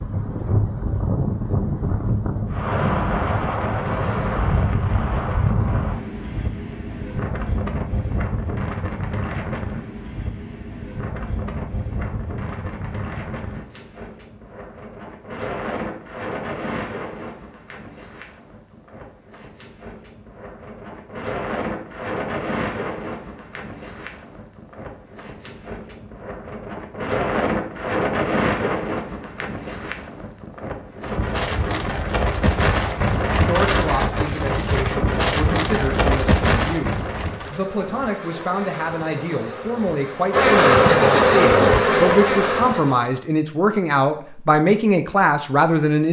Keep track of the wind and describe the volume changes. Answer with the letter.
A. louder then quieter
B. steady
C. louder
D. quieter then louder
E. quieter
D.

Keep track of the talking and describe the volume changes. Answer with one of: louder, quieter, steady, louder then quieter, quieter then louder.
louder.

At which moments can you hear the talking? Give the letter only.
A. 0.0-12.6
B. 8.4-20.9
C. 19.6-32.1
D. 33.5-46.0
D.